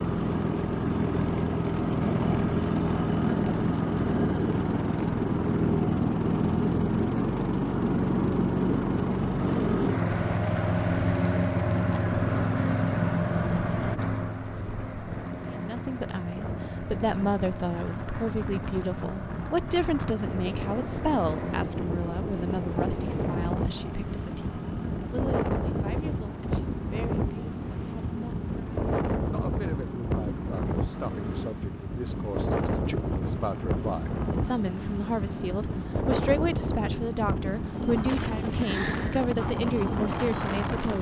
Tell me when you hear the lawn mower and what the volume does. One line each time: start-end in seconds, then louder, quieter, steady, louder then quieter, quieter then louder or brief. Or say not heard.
0.0-40.9 quieter.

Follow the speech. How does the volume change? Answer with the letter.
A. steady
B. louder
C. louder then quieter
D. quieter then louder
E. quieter
D.